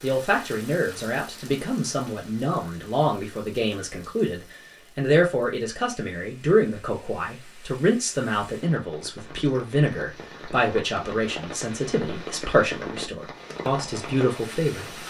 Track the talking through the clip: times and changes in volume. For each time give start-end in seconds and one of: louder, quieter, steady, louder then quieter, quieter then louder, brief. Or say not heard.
0.0-15.0 steady.